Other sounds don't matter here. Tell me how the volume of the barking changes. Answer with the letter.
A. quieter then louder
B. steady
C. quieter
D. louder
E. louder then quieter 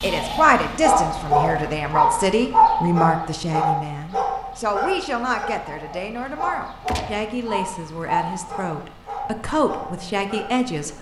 C.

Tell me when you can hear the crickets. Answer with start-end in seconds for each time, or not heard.
not heard.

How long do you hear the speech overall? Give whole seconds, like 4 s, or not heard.
11 s.